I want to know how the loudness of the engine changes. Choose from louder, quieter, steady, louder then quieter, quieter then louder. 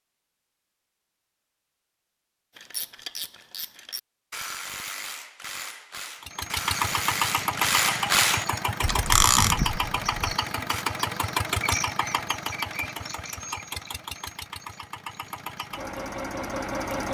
quieter.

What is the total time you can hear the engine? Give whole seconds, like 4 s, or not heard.
11 s.